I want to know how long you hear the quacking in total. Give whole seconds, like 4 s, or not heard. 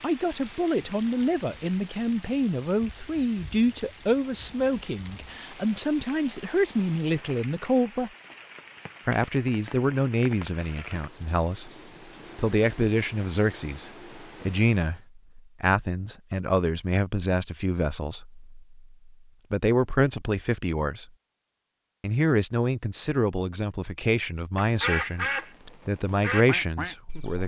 3 s.